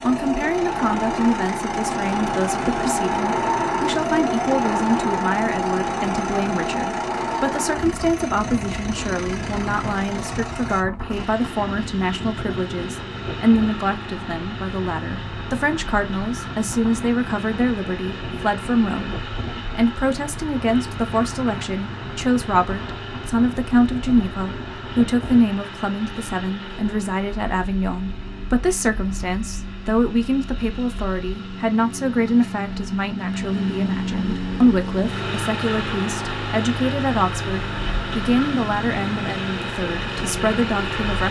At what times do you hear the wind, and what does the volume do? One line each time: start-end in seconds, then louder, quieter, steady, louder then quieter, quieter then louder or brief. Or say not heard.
0.0-25.4 quieter.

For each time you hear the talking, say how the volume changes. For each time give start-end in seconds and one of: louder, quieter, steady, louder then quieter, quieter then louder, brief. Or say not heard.
0.1-41.2 steady.